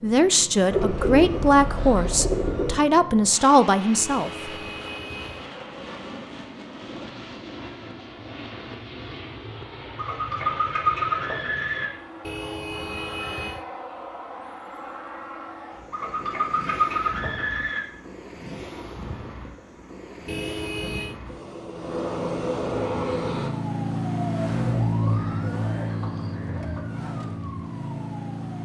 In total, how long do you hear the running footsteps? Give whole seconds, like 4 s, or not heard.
not heard.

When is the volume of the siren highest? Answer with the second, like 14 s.
25 s.